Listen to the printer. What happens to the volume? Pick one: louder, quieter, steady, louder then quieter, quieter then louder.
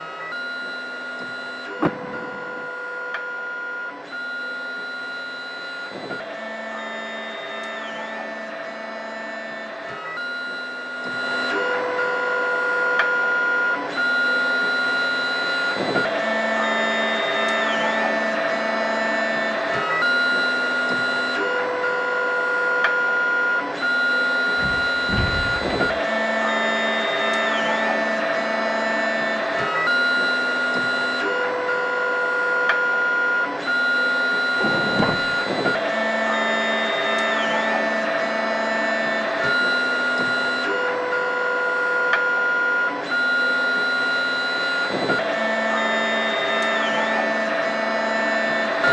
louder.